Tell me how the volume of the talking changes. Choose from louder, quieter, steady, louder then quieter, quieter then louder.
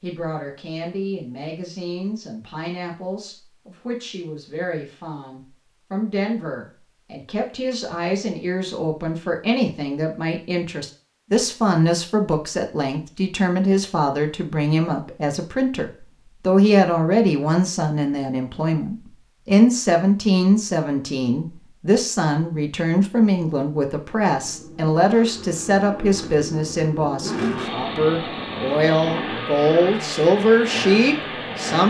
louder.